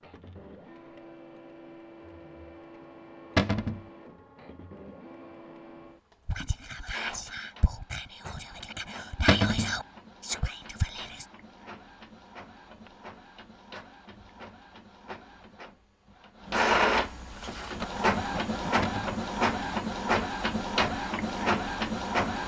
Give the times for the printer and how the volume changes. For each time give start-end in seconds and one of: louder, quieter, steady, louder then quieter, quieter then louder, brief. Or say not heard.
0.0-22.4 louder.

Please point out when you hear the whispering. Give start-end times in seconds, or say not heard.
6.2-11.2.